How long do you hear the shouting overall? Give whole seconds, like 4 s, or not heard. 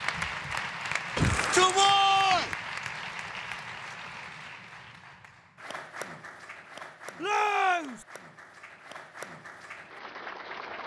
2 s.